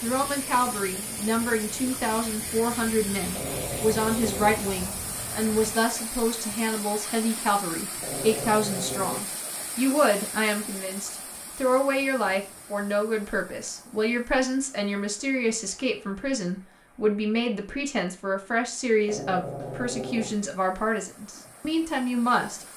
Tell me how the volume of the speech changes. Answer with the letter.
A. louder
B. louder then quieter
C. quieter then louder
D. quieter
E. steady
E.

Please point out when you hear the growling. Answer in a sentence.
The growling can be heard from 3.2 to 4.7 s, from 7.9 to 9.2 s and from 18.9 to 20.4 s.